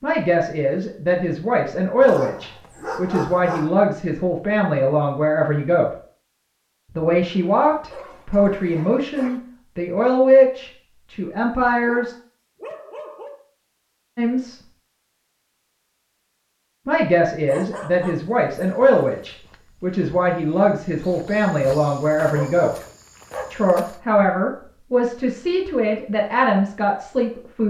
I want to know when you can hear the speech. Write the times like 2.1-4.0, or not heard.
0.0-5.8, 7.0-12.2, 14.2-14.6, 16.9-22.7, 23.5-27.6.